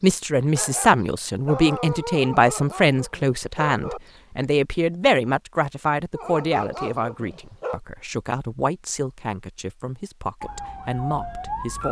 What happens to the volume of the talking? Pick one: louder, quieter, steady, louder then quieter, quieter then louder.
quieter.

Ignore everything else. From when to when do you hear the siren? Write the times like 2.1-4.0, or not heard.
10.4-11.8.